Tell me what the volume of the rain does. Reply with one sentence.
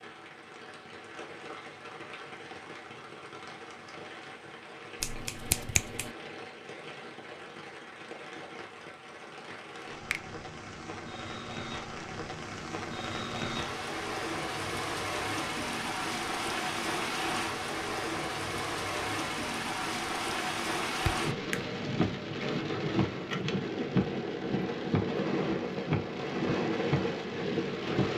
The volume of the rain goes up.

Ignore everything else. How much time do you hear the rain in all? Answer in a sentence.
The rain can be heard for 28 seconds in total.